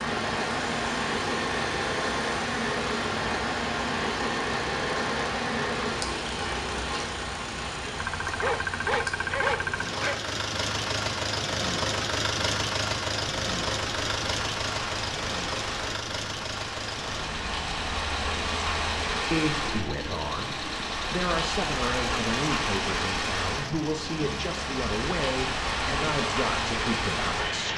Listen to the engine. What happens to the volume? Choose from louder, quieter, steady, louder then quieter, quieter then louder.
louder then quieter.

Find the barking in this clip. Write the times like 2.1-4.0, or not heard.
8.2-10.2.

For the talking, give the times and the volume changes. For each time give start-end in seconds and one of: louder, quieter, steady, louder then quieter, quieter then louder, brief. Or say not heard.
19.3-27.7 steady.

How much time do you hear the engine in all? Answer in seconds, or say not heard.
28 s.